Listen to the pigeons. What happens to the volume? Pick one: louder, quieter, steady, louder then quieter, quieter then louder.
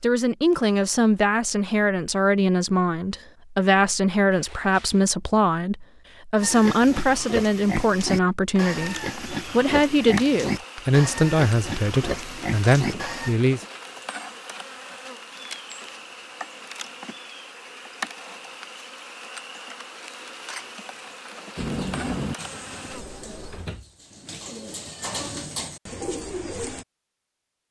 quieter then louder.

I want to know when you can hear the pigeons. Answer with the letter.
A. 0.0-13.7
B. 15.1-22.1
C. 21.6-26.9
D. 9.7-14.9
C.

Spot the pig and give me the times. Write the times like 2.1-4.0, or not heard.
6.3-13.3.